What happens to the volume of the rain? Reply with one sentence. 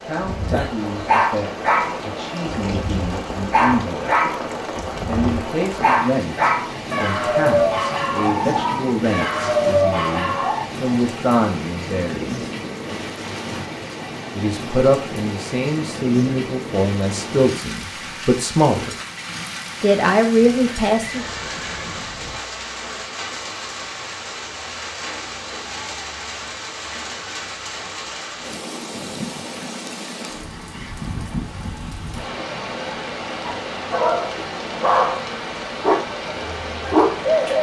The loudness of the rain stays about the same.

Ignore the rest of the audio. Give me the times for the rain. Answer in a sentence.
You can hear the rain from 0.0 to 37.5 s.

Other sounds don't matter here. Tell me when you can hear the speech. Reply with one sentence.
The speech can be heard from 0.1 to 4.3 s, from 5.0 to 12.4 s, from 14.3 to 18.9 s and from 19.8 to 21.2 s.